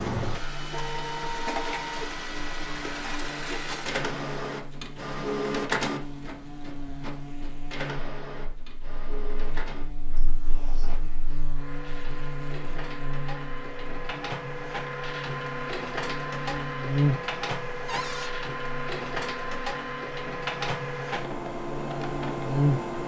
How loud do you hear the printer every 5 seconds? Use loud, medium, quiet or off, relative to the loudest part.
loud, loud, medium, loud, loud.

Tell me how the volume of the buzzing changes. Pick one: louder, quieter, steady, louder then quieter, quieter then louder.
louder then quieter.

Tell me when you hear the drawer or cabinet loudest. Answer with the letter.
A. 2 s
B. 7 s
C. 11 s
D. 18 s
D.